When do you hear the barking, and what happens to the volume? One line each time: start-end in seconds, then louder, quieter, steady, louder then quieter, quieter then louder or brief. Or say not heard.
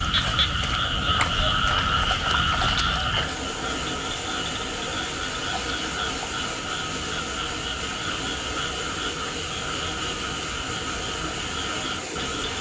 not heard.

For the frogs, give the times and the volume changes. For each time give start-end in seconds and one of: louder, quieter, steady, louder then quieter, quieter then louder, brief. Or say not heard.
0.0-12.5 quieter.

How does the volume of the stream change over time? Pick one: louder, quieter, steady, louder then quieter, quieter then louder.
louder.